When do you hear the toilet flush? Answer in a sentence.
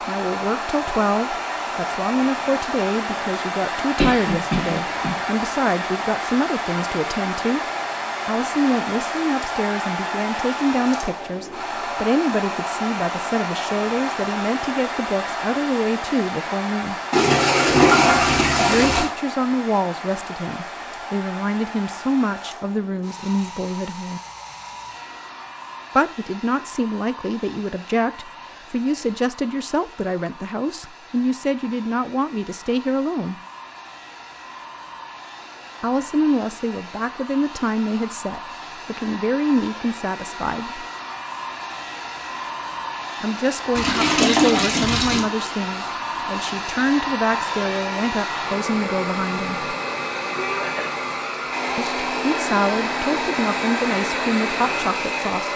The toilet flush can be heard from 17.1 to 19.1 s and from 43.8 to 45.2 s.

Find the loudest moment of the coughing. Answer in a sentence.
The loudest moment of the coughing is at 4 seconds.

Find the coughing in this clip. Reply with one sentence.
You can hear the coughing from 4.0 to 5.2 s and from 50.4 to 51.0 s.